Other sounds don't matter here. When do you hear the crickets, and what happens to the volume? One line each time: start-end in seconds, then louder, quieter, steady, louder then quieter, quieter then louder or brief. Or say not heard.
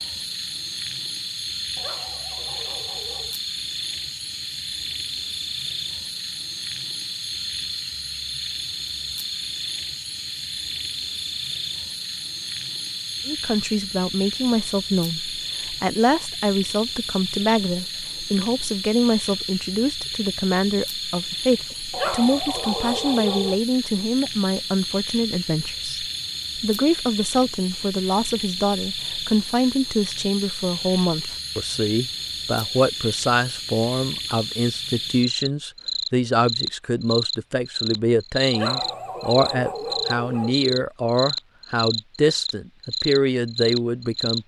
0.0-44.4 steady.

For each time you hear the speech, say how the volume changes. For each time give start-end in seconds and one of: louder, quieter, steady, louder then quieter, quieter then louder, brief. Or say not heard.
13.2-44.4 steady.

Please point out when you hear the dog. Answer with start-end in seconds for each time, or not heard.
1.8-3.4, 21.9-23.6, 38.5-40.5.